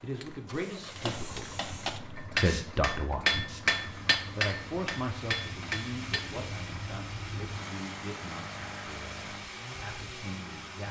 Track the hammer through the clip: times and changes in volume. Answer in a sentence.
The hammer can be heard from 0.9 to 6.5 s, getting louder then quieter.